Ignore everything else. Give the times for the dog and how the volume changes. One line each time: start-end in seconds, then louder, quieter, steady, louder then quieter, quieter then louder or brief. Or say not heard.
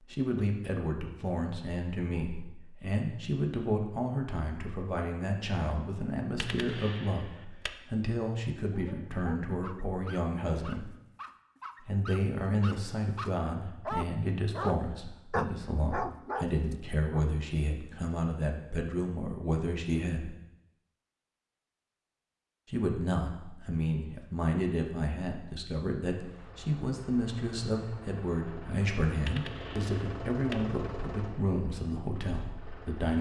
8.7-17.2 louder.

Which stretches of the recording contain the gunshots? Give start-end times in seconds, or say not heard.
6.3-7.7, 29.2-30.6.